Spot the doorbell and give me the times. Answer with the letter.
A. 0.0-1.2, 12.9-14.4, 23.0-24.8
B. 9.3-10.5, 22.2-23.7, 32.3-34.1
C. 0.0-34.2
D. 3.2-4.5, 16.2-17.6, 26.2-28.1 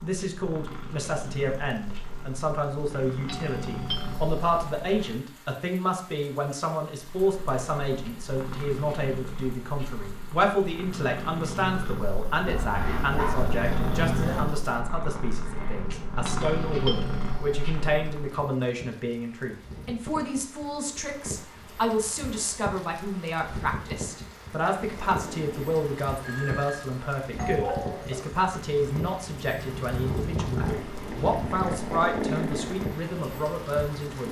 D.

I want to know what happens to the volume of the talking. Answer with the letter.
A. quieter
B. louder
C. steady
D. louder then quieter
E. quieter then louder
C.